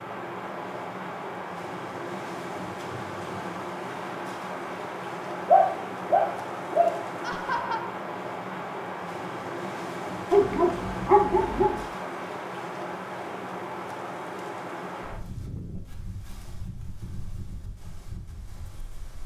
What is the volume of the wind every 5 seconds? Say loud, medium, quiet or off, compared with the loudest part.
loud, loud, loud, medium.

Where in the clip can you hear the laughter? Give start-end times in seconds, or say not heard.
7.2-8.0.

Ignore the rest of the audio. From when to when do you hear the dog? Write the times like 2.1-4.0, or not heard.
5.5-6.9, 10.3-11.8.